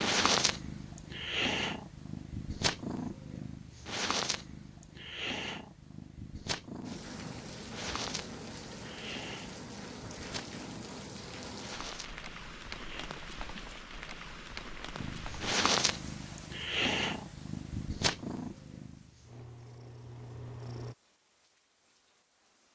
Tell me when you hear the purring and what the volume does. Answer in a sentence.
You can hear the purring from 0.0 to 13.1 s, getting quieter; and from 14.9 to 20.9 s, getting quieter.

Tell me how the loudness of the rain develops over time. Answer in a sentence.
The loudness of the rain goes down.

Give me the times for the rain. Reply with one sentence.
You can hear the rain from 6.8 to 22.7 s.